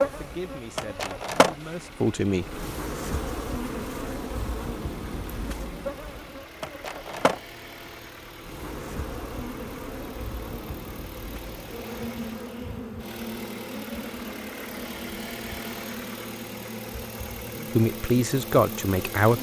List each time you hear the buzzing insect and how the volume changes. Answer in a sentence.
The buzzing insect can be heard from 0.0 to 19.3 s, getting quieter.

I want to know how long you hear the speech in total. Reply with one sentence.
You can hear the speech for 4 seconds altogether.